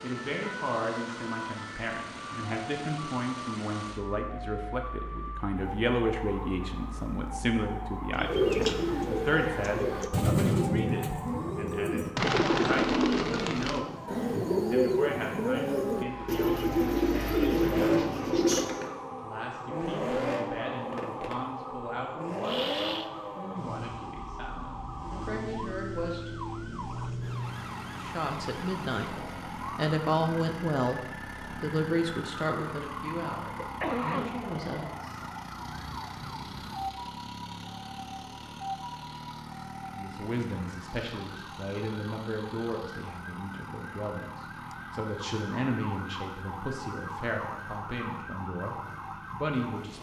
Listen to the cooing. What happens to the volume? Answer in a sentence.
The loudness of the cooing stays about the same.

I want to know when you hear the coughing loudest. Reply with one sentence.
The loudest moment of the coughing is at 34 seconds.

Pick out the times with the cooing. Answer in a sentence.
You can hear the cooing from 8.1 to 18.8 s.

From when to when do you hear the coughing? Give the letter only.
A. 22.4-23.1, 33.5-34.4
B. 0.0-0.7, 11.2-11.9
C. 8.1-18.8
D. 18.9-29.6
A.